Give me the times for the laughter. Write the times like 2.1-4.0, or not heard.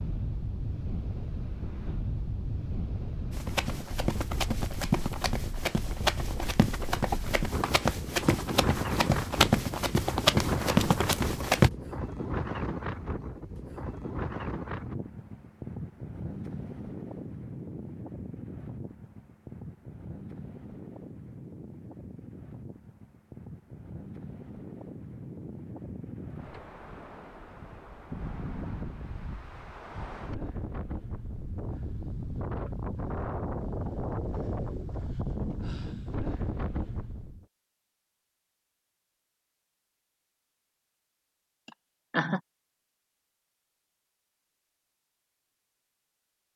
7.1-7.7, 41.6-42.4.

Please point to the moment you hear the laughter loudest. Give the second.
42 s.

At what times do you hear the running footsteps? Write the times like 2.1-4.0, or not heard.
3.3-11.7.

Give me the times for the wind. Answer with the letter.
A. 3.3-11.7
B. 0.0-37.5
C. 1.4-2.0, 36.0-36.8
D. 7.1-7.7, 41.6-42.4
B.